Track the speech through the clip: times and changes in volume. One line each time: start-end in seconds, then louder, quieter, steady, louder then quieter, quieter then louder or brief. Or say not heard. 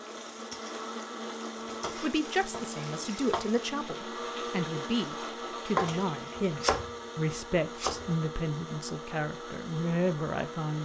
1.9-10.8 steady.